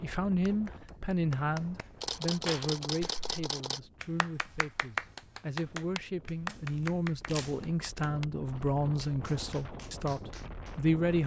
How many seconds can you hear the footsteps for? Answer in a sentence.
You can't hear the footsteps here.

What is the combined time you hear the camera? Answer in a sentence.
You can hear the camera for 3 seconds altogether.